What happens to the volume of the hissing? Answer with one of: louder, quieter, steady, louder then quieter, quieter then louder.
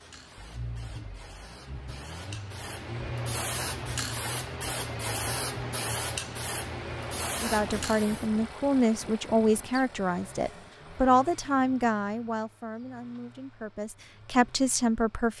louder.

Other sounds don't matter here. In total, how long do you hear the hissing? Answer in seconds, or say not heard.
8 s.